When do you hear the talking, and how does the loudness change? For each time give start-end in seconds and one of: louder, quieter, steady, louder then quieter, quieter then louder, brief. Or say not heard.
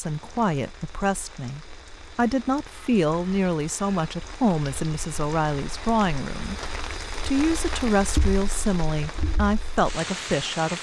0.0-10.7 steady.